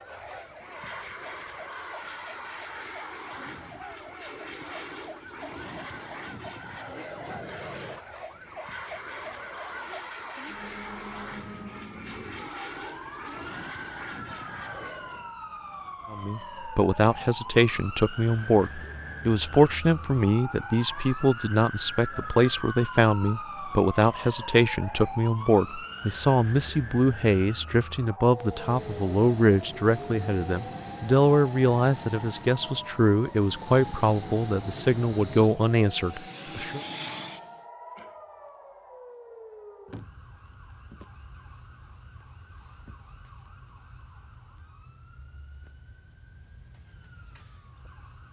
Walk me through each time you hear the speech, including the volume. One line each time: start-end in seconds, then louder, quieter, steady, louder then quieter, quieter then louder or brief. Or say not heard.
16.1-36.8 steady.